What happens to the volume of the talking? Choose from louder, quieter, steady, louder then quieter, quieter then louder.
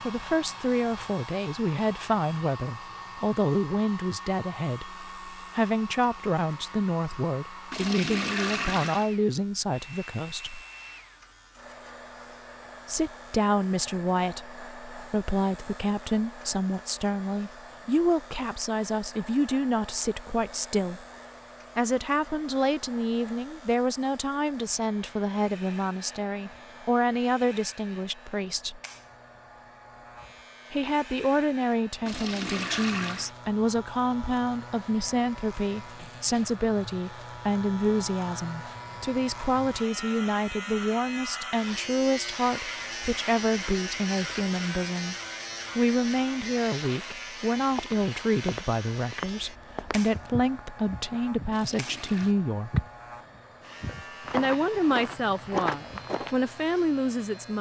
steady.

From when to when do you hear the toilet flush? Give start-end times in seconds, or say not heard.
7.7-9.1, 32.0-33.4, 51.5-52.4.